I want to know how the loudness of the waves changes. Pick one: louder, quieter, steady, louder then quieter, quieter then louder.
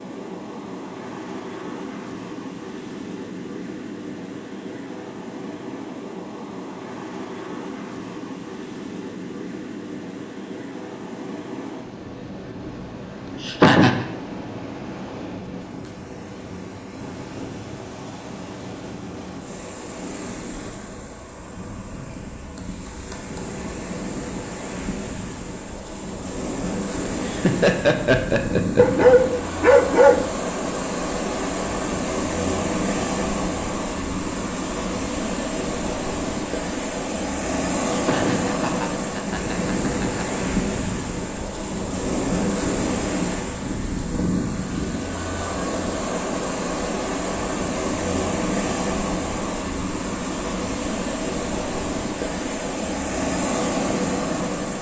louder.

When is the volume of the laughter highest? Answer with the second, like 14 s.
14 s.